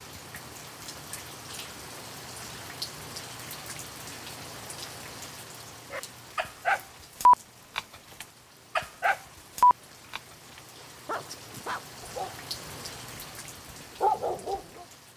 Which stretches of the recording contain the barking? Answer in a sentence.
You can hear the barking from 5.9 to 14.8 s.